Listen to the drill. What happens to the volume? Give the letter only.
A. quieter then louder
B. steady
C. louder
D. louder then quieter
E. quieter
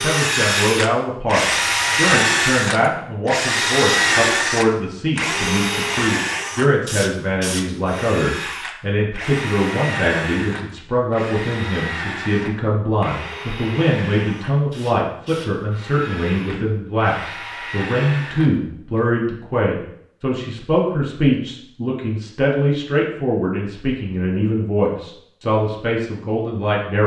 E.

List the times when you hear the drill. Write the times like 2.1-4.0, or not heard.
0.0-19.0.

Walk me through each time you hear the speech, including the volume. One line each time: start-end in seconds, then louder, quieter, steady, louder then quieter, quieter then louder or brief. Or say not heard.
0.0-27.0 steady.